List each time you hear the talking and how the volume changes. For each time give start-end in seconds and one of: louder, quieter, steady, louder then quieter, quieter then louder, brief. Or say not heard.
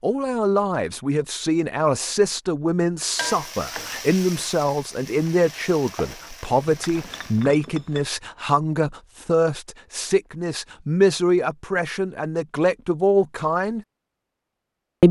0.0-13.8 steady.